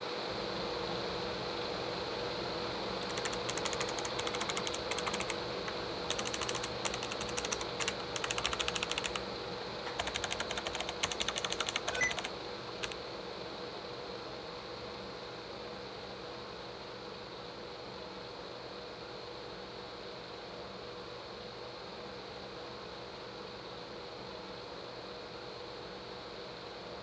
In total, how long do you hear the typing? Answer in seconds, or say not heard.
10 s.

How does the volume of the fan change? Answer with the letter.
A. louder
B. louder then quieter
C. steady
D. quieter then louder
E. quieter
E.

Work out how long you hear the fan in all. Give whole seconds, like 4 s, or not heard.
27 s.